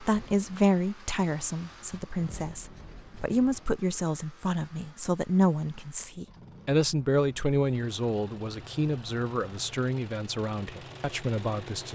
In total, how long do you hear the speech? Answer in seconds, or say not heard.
12 s.